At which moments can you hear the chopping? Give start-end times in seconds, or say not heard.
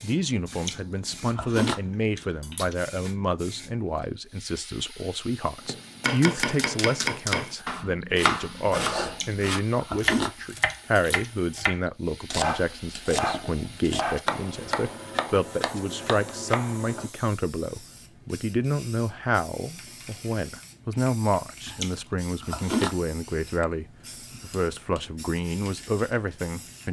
5.7-17.1.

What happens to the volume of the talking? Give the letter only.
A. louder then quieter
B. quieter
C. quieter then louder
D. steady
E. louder
D.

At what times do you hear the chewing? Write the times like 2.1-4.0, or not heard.
0.5-2.8, 9.1-11.3, 21.6-23.1.